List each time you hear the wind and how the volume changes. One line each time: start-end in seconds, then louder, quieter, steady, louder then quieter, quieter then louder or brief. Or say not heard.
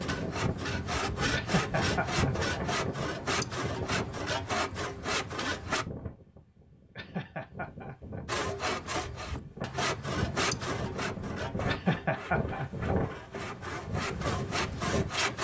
0.0-15.4 quieter then louder.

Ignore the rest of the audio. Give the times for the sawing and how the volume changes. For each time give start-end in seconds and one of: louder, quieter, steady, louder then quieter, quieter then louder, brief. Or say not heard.
0.0-5.8 steady
8.2-15.4 quieter then louder.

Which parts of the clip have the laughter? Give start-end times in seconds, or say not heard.
1.3-2.6, 7.0-8.2, 11.7-12.9.